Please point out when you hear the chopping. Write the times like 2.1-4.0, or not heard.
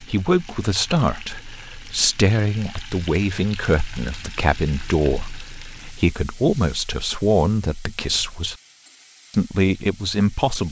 not heard.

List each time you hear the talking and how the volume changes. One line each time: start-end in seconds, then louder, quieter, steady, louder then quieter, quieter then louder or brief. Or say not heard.
0.0-8.6 steady
9.3-10.6 brief.